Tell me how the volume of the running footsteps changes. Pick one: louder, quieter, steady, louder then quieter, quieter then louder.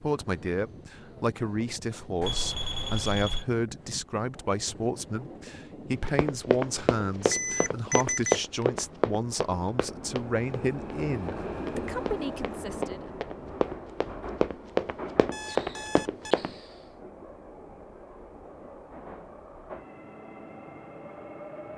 quieter then louder.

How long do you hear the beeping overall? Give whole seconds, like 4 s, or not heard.
4 s.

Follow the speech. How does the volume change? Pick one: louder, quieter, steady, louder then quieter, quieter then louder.
steady.